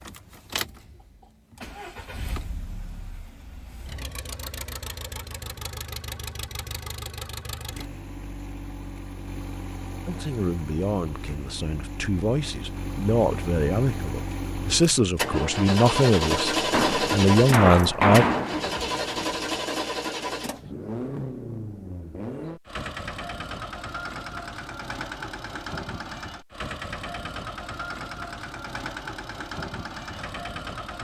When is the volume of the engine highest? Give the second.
17 s.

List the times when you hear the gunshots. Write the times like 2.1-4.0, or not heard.
16.7-19.3.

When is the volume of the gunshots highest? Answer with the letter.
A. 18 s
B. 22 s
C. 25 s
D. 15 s
A.